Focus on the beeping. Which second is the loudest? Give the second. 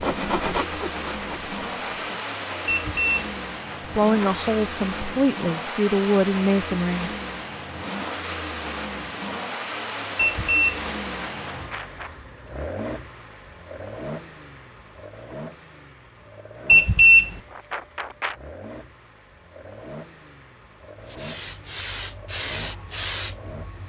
17 s.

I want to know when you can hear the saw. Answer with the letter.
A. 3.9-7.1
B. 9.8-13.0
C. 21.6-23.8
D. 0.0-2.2
D.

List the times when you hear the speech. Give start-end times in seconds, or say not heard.
3.9-7.1.